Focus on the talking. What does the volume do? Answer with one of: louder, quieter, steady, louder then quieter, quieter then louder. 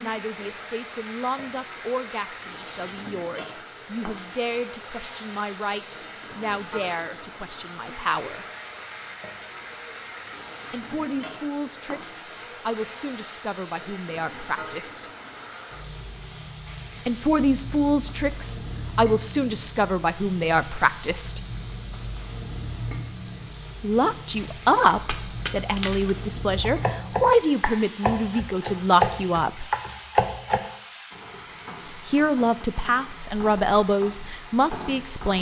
louder.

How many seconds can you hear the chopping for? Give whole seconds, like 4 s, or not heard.
6 s.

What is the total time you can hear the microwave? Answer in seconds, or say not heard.
not heard.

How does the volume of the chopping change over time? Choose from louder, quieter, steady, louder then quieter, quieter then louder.
louder.